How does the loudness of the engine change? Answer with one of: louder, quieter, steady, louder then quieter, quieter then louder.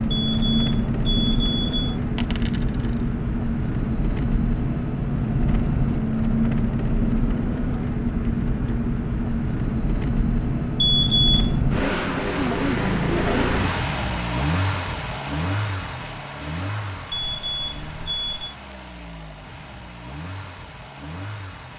quieter.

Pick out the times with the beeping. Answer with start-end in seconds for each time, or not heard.
0.1-2.0, 10.8-11.8, 17.1-18.6.